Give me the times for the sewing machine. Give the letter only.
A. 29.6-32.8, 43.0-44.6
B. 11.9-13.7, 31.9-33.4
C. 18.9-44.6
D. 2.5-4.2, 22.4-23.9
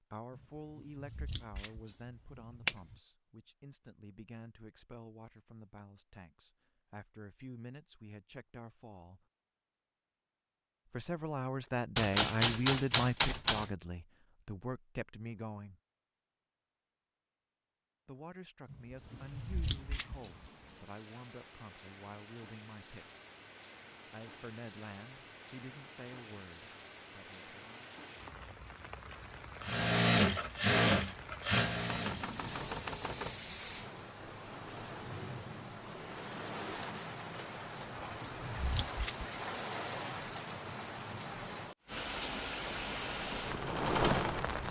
A.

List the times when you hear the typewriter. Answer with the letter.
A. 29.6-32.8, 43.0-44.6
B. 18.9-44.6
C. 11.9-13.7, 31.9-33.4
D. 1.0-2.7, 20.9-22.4
C.